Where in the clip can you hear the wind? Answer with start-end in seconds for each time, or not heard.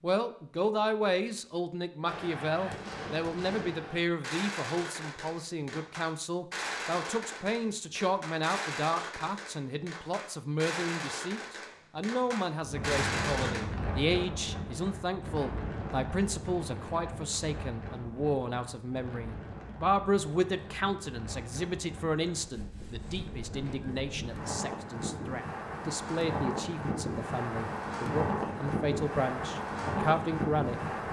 12.6-31.0.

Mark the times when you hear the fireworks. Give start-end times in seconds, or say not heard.
2.0-13.7.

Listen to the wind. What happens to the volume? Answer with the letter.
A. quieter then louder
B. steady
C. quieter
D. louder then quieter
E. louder
A.